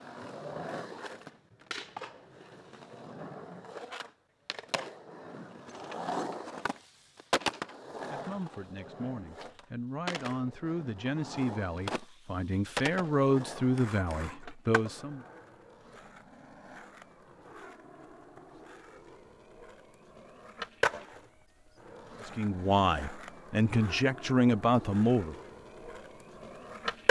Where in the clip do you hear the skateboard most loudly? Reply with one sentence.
The loudest moment of the skateboard is at 27 seconds.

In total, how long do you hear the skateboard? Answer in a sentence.
The skateboard can be heard for 27 seconds in total.